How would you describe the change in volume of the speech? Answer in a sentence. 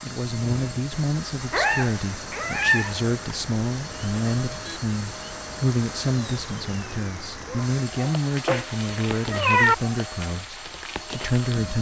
The volume of the speech stays about the same.